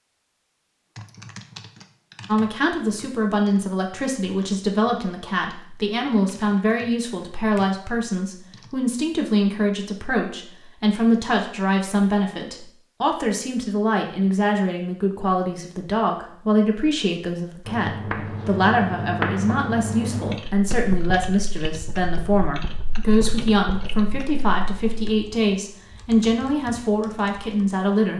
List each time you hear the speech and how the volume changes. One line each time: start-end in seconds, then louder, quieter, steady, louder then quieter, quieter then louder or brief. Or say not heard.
2.2-28.1 steady.